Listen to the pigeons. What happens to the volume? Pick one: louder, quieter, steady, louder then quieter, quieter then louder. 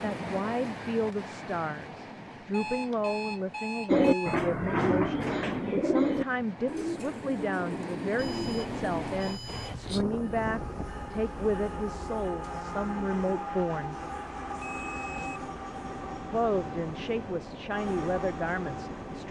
quieter.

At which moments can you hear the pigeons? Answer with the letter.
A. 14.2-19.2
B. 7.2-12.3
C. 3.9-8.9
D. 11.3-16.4
C.